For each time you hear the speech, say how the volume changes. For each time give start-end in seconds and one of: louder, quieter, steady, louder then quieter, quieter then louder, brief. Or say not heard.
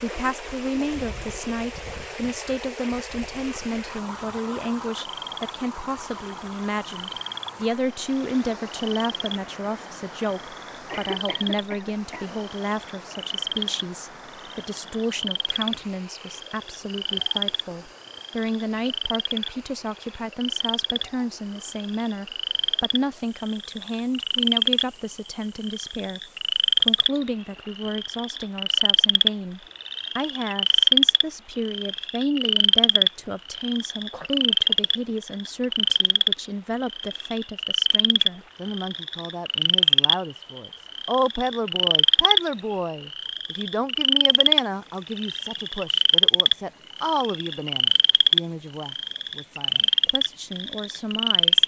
0.0-26.2 steady
26.8-51.6 steady.